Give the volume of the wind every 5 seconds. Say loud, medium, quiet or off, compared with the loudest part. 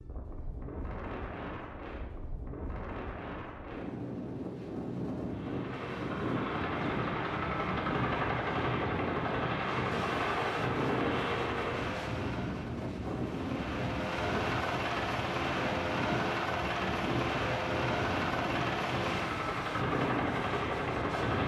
medium, loud, loud, loud, loud.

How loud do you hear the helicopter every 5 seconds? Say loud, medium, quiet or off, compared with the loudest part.
off, loud, loud, loud, loud.